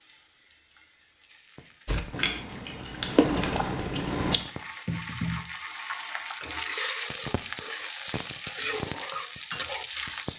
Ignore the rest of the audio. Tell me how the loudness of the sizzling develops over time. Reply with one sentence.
The loudness of the sizzling goes up.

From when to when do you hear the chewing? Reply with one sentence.
The chewing can be heard from 1.9 to 4.4 s.